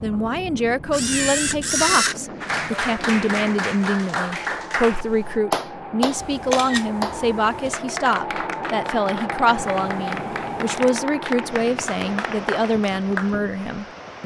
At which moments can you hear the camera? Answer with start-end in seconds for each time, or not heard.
0.9-2.1, 6.2-7.8, 9.5-10.9.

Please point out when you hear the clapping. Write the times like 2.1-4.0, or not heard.
2.4-13.3.